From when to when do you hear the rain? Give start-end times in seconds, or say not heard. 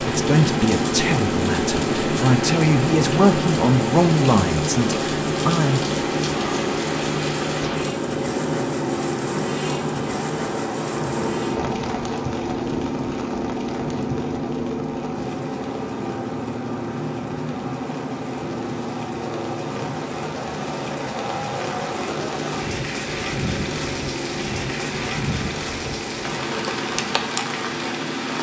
0.0-28.3.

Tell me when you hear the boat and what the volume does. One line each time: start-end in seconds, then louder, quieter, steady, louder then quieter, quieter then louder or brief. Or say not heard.
0.0-28.3 quieter.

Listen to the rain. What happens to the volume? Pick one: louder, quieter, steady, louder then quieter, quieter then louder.
quieter then louder.